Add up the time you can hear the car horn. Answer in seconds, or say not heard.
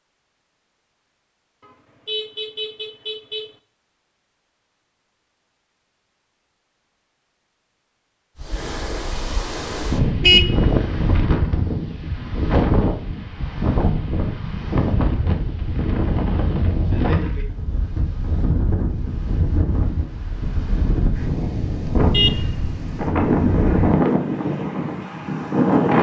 4 s.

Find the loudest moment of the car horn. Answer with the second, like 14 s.
10 s.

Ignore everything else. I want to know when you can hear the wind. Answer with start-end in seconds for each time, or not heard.
8.3-25.9.